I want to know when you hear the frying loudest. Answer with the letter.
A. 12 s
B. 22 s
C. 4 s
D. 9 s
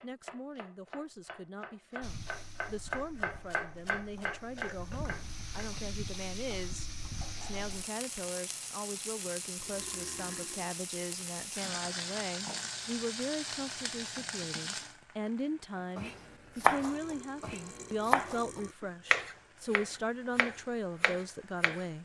A.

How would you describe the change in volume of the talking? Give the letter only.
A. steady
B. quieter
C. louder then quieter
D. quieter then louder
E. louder
E.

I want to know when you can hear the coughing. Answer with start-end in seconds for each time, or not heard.
not heard.